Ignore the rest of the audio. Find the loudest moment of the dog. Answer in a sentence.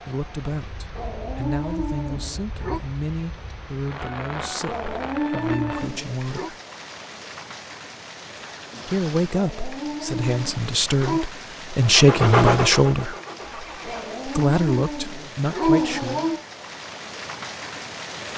The volume of the dog peaks at 16 seconds.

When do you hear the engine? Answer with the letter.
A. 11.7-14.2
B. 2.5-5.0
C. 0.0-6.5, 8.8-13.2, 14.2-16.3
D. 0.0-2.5
A.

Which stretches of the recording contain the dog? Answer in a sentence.
You can hear the dog from 0.9 to 2.8 s, from 4.7 to 6.5 s, from 9.3 to 11.2 s and from 13.8 to 16.4 s.